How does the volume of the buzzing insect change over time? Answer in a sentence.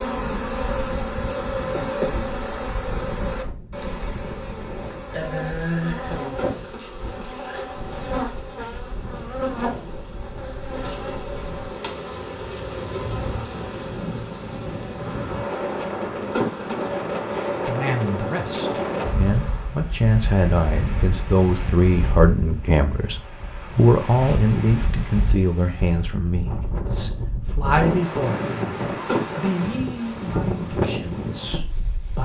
The volume of the buzzing insect goes down.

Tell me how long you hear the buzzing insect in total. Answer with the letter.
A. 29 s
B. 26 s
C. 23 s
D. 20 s
D.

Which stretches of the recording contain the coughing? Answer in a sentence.
You can hear the coughing from 6.3 to 6.8 s, from 16.3 to 16.8 s and from 29.1 to 29.5 s.